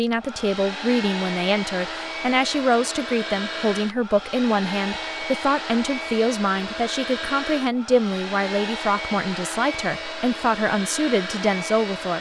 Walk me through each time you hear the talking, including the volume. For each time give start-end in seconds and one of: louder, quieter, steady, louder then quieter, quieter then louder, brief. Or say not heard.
0.0-12.1 steady.